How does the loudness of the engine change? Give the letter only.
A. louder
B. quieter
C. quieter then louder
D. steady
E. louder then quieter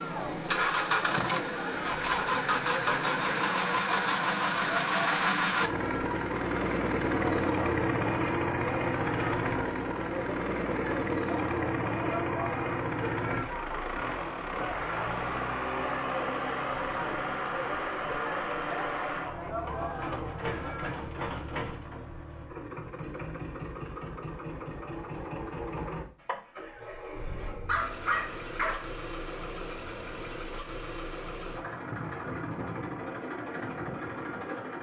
B.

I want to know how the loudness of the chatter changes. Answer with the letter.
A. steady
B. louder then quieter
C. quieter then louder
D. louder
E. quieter
A.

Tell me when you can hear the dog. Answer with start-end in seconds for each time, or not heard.
26.6-28.9.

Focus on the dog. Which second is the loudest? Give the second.
28 s.